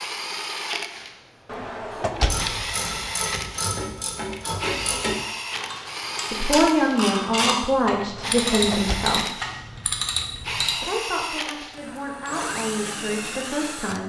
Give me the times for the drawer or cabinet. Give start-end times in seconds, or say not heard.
1.4-3.0, 8.2-9.2.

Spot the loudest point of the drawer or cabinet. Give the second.
2 s.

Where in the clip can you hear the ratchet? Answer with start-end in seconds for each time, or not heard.
2.1-10.8.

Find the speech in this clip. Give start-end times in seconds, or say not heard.
6.3-9.4, 10.7-14.0.